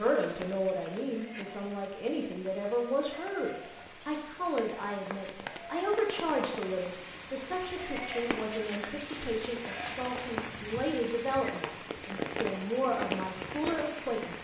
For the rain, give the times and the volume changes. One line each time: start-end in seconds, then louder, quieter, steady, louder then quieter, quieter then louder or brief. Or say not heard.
0.0-14.3 louder.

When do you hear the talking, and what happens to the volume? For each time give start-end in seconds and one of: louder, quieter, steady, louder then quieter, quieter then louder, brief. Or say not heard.
0.0-14.3 steady.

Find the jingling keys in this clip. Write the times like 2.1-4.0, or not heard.
9.7-10.3.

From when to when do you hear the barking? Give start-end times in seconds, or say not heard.
not heard.